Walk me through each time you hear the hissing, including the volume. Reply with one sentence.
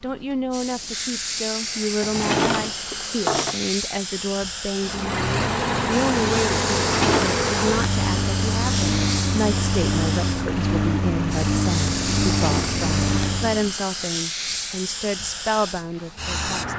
You can hear the hissing from 0.0 to 16.7 s, at a steady volume.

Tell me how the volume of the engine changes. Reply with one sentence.
The volume of the engine stays about the same.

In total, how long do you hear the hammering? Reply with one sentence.
The hammering can't be heard in this clip.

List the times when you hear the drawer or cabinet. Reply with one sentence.
The drawer or cabinet can be heard from 2.0 to 3.6 s, from 6.8 to 7.3 s and from 12.3 to 12.8 s.